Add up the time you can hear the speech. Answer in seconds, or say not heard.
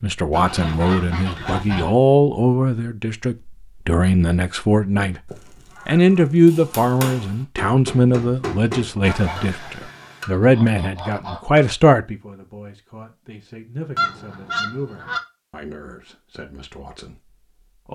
18 s.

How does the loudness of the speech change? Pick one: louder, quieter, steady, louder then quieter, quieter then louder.
quieter.